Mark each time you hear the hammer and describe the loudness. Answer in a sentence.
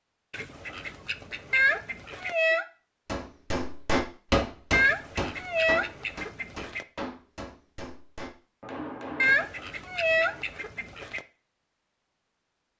The hammer can be heard from 3.0 to 9.4 s, getting quieter.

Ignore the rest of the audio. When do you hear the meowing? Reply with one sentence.
The meowing can be heard from 1.5 to 2.6 s, from 4.7 to 5.8 s and from 9.2 to 10.3 s.